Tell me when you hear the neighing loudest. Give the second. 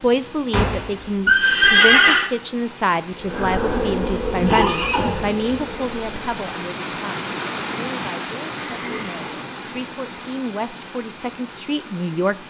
2 s.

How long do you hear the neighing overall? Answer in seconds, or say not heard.
4 s.